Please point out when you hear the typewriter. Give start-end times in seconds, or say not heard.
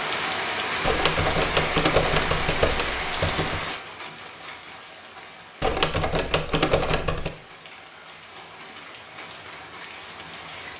0.8-3.6, 5.6-7.3.